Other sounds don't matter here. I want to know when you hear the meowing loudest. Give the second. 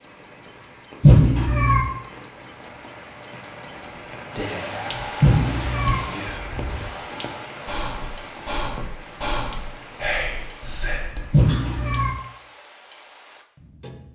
1 s.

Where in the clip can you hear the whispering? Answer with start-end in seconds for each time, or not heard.
3.9-11.7.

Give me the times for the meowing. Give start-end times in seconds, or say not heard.
1.0-1.8, 5.2-6.0, 11.3-12.1.